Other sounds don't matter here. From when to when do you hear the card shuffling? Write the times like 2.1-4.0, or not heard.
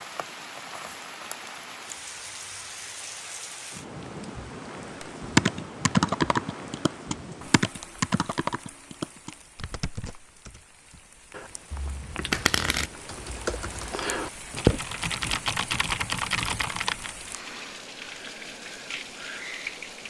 11.7-12.9.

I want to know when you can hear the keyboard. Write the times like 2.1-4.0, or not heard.
5.0-17.1.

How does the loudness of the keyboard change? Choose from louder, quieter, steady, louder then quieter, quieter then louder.
quieter then louder.